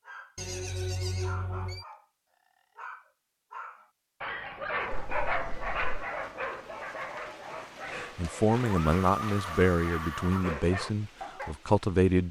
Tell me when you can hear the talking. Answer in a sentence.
You can hear the talking from 8.0 to 12.2 s.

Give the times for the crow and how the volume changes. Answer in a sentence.
You can't hear the crow here.